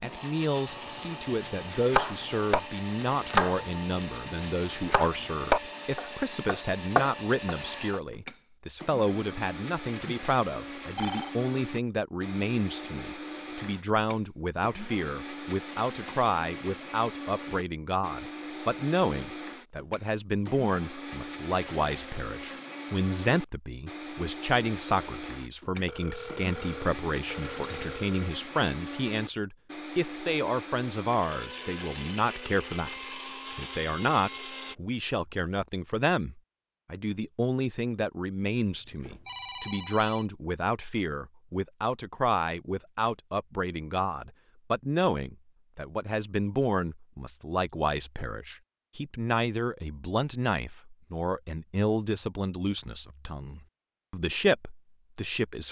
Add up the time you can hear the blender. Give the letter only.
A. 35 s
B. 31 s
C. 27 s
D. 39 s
A.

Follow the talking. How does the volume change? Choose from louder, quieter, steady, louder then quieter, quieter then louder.
steady.